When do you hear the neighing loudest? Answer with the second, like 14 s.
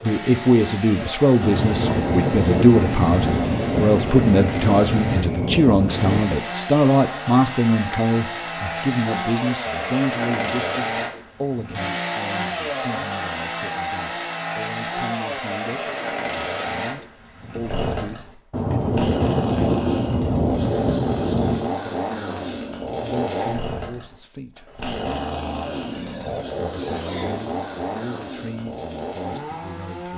27 s.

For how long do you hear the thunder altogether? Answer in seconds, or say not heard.
8 s.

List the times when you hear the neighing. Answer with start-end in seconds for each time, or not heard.
25.9-27.4.